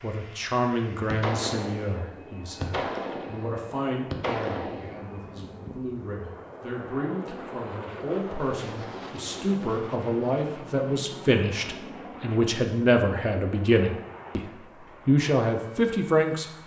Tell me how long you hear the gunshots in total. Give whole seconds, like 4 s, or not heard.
4 s.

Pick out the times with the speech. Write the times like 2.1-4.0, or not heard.
0.0-14.4, 15.1-16.4.